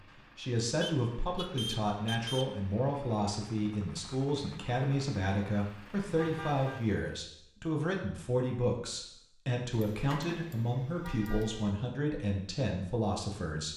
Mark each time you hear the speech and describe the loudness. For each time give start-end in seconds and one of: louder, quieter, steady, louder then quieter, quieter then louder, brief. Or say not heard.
0.0-13.7 steady.